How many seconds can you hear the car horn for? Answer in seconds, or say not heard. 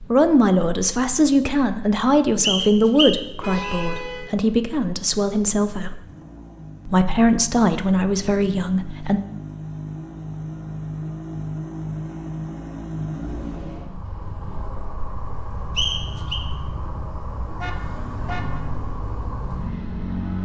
2 s.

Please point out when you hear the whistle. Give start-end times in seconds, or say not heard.
2.4-3.9, 15.8-16.4.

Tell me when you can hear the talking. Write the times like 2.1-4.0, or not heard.
0.0-6.0, 6.8-9.2.